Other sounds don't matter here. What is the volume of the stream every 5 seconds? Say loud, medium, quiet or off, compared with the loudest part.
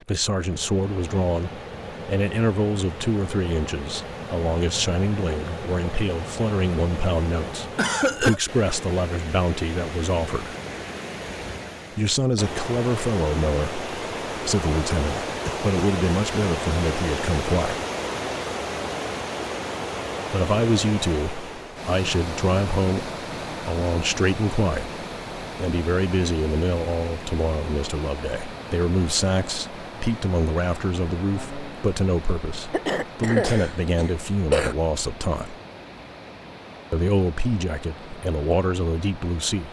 medium, medium, loud, loud, loud, medium, medium, quiet.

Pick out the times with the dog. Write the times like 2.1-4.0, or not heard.
not heard.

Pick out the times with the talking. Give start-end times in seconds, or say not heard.
0.1-10.6, 11.9-17.9, 20.3-35.5, 36.9-39.6.